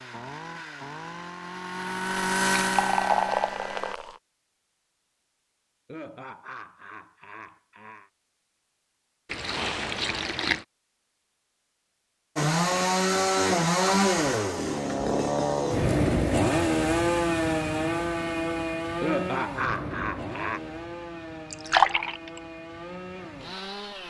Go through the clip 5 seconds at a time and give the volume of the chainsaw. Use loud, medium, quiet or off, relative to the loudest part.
medium, off, loud, loud, quiet.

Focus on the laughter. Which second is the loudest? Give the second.
19 s.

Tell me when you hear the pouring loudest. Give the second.
22 s.